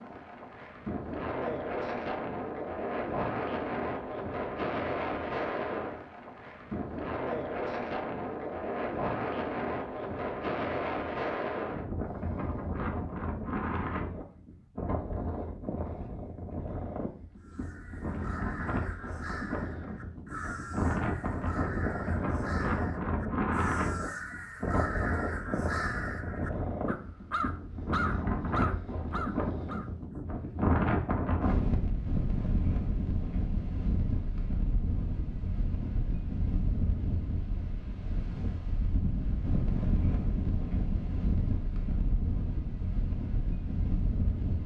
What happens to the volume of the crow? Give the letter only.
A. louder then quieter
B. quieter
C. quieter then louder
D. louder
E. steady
D.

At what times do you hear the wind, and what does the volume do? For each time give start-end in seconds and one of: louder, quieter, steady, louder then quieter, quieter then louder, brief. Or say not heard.
0.0-44.6 steady.